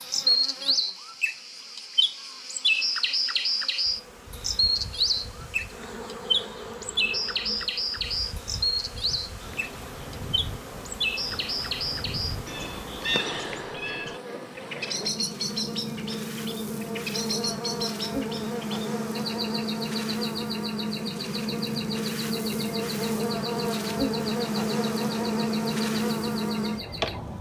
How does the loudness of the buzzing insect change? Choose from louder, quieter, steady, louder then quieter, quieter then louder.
louder.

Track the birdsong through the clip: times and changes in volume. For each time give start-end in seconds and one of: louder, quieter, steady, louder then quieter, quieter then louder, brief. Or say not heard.
0.0-27.2 quieter.